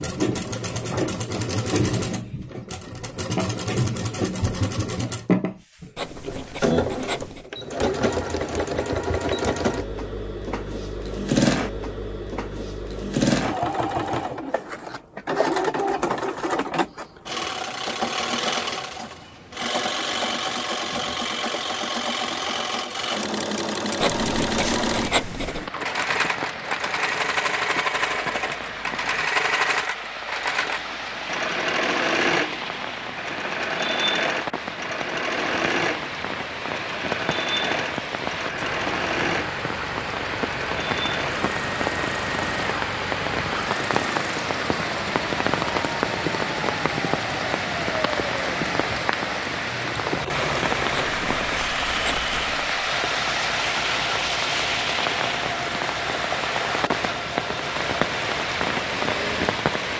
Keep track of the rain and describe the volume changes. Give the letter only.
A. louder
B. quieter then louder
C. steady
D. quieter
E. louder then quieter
A.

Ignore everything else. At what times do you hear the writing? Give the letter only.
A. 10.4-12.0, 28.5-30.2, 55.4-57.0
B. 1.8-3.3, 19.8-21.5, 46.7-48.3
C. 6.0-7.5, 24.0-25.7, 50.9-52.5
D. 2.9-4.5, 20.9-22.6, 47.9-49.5
C.